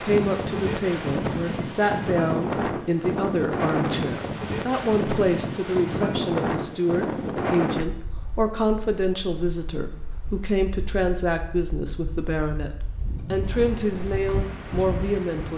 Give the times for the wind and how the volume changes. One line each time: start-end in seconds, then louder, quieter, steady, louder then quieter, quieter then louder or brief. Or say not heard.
0.0-15.5 quieter then louder.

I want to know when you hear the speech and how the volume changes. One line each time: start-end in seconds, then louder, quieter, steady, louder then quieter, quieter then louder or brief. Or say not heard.
0.0-15.5 steady.